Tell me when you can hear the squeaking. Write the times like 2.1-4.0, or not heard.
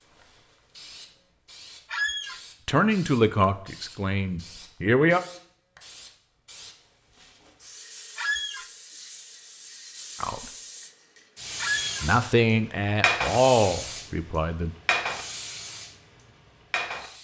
1.9-2.4, 8.2-8.7, 11.6-12.1.